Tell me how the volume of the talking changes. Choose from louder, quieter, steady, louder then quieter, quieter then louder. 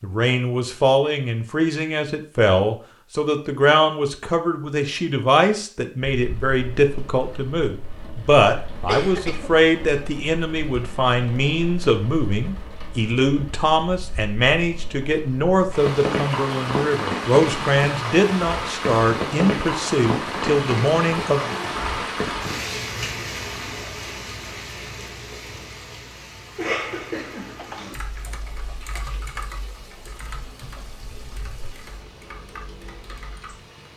steady.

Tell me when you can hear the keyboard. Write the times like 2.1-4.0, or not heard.
27.6-33.6.